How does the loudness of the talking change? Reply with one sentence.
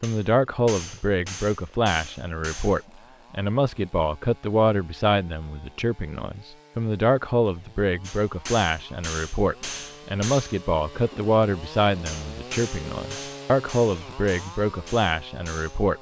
The loudness of the talking stays about the same.